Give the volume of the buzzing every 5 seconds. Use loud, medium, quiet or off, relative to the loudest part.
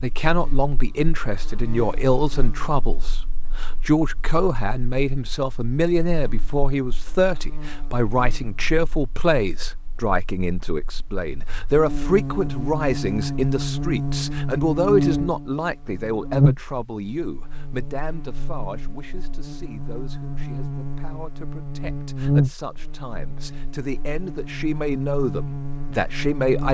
quiet, quiet, loud, loud, loud, loud.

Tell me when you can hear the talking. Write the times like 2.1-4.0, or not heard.
0.0-26.6.